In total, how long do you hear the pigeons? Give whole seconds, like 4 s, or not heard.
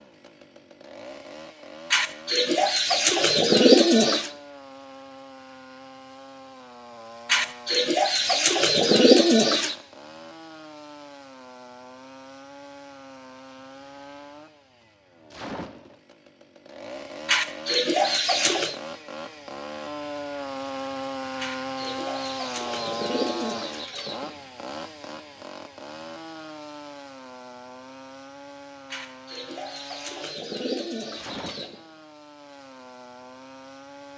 12 s.